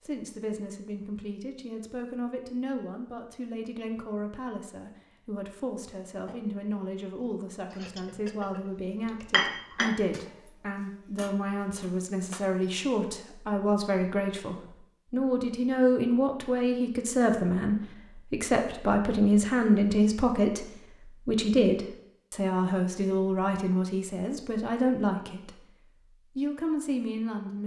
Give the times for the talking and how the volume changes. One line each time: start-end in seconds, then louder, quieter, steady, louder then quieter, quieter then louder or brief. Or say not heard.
0.0-25.6 louder
26.4-27.6 brief.